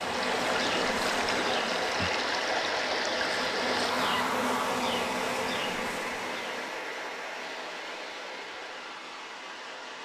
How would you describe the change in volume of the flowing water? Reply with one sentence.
The volume of the flowing water goes down.